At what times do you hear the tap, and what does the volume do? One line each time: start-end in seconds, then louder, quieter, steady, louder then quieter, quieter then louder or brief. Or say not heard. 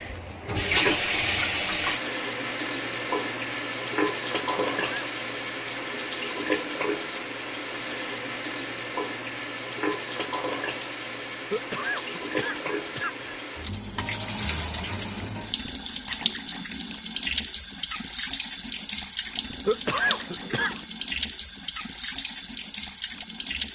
0.0-23.7 quieter.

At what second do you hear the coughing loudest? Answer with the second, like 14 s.
20 s.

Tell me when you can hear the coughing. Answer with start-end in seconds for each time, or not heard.
4.5-5.0, 11.5-13.4, 19.6-20.9.